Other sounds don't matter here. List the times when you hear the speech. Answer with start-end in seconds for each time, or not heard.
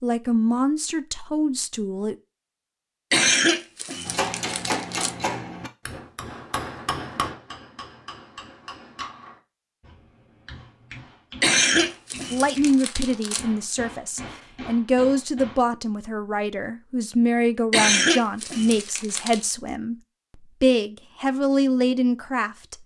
0.0-2.1, 12.3-22.8.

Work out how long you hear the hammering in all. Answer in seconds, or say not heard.
12 s.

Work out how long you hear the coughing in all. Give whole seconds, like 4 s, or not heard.
6 s.